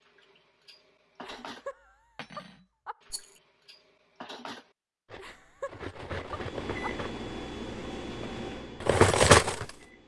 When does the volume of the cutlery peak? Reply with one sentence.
The loudest moment of the cutlery is at 9 seconds.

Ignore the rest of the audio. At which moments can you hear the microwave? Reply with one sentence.
You can hear the microwave from 6.2 to 10.0 s.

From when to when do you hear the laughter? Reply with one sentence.
The laughter can be heard from 1.2 to 3.0 s and from 5.2 to 6.9 s.